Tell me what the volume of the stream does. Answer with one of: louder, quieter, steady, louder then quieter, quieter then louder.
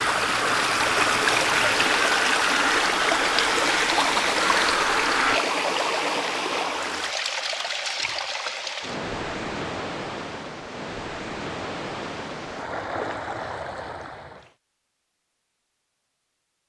quieter.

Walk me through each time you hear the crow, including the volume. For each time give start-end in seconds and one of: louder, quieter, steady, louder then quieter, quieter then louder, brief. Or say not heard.
0.0-5.4 steady.